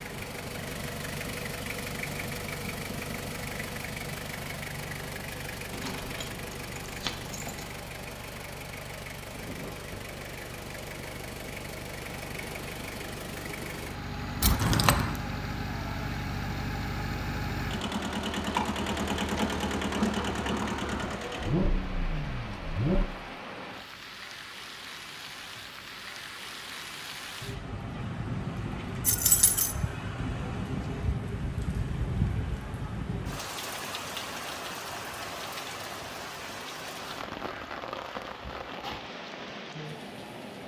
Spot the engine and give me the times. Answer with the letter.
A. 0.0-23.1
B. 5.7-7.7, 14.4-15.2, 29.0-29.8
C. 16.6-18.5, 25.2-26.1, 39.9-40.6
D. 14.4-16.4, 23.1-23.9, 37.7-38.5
A.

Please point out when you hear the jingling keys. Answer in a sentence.
You can hear the jingling keys from 5.7 to 7.7 s, from 14.4 to 15.2 s and from 29.0 to 29.8 s.